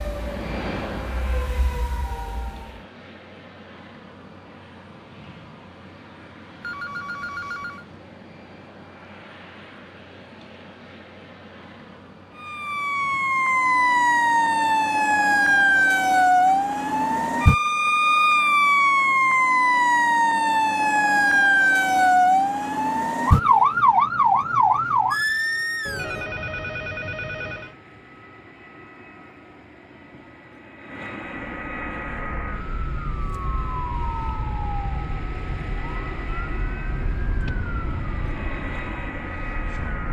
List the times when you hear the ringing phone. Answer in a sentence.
The ringing phone can be heard from 6.6 to 7.8 s and from 25.9 to 27.8 s.